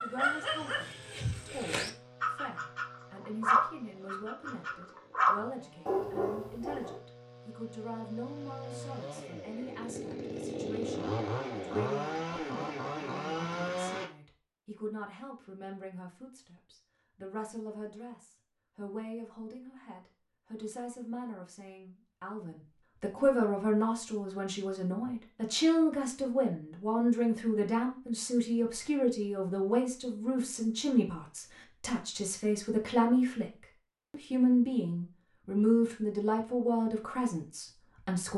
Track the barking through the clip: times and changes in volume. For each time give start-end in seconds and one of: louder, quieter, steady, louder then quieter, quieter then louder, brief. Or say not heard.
0.0-7.0 louder then quieter.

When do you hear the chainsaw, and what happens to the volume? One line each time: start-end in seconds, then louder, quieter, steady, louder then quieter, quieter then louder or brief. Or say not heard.
0.0-14.1 louder.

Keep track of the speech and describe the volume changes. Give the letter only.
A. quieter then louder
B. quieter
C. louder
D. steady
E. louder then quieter
C.